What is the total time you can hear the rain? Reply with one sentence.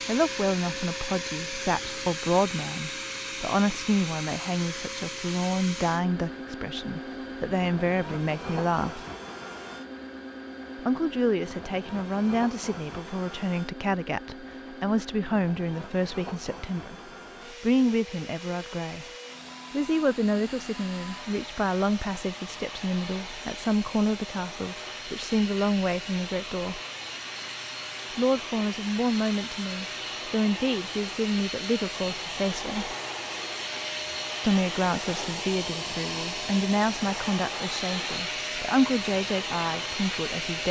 You can't hear the rain here.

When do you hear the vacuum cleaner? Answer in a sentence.
The vacuum cleaner can be heard from 0.0 to 40.6 s.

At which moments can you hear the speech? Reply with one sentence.
The speech can be heard from 0.1 to 9.1 s, from 10.8 to 19.1 s, from 19.7 to 26.8 s, from 28.1 to 33.0 s and from 34.4 to 40.6 s.